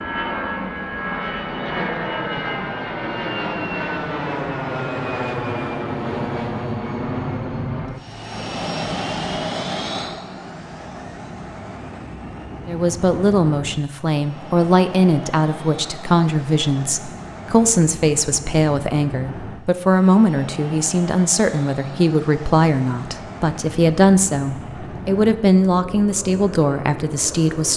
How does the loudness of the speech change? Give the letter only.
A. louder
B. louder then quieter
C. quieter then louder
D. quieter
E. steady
E.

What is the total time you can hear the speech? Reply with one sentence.
The speech can be heard for 15 seconds in total.